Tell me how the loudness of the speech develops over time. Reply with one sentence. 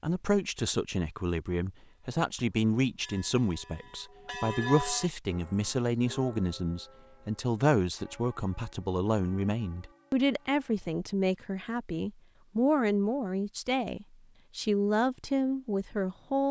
The volume of the speech stays about the same.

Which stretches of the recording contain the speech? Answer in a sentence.
You can hear the speech from 0.0 to 16.4 s.